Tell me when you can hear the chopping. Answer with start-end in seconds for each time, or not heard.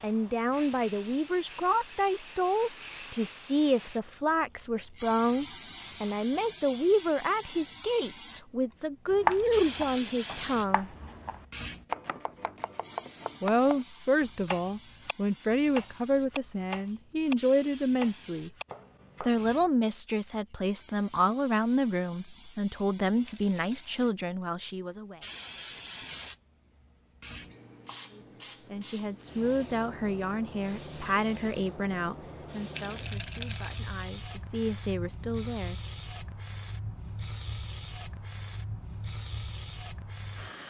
9.1-19.6.